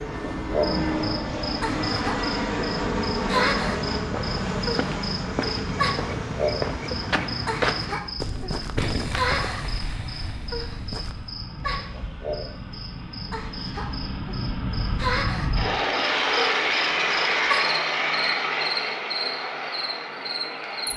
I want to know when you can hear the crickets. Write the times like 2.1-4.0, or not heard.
0.0-20.9.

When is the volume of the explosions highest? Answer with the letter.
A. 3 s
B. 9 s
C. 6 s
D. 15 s
B.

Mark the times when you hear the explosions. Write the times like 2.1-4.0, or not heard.
8.8-11.3.